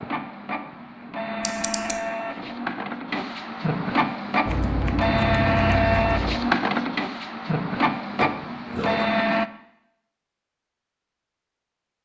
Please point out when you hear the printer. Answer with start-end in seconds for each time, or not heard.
0.0-9.5.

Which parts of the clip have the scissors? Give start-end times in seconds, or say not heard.
1.4-2.0, 4.5-6.5, 8.2-9.1.